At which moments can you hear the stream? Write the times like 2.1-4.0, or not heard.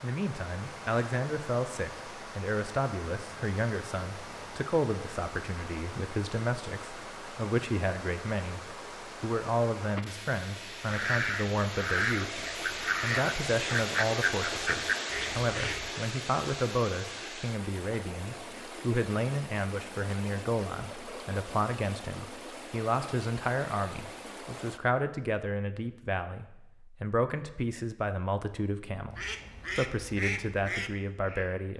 0.0-24.8.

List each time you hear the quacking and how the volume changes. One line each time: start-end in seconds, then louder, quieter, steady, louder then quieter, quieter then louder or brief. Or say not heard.
10.8-15.9 steady
29.1-31.6 brief.